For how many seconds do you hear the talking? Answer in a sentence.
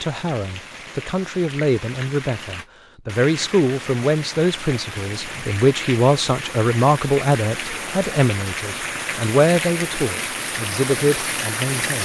The talking can be heard for 12 seconds in total.